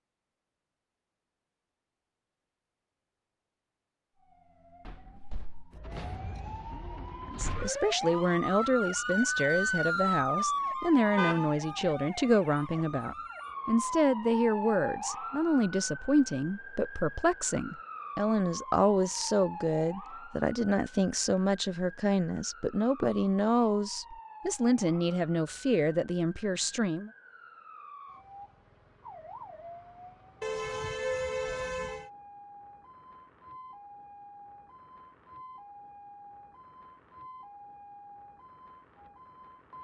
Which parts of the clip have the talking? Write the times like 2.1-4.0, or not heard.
7.2-27.1.